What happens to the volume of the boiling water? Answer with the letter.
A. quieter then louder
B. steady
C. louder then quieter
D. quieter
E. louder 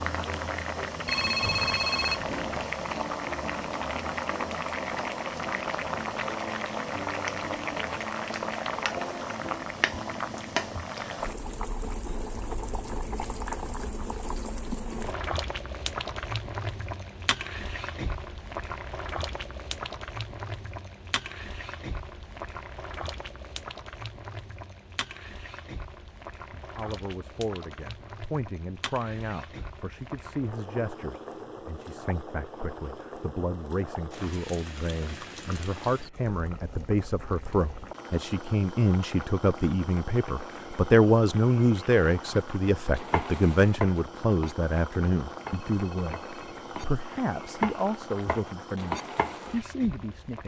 D.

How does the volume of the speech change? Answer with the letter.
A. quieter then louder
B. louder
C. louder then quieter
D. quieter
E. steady
C.